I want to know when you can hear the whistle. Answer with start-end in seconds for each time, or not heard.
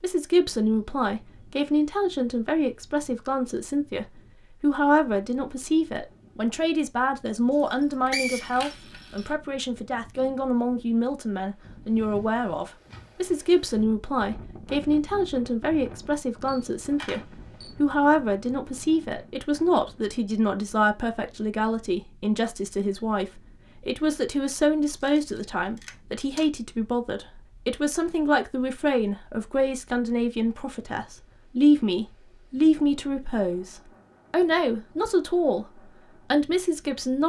7.6-9.2.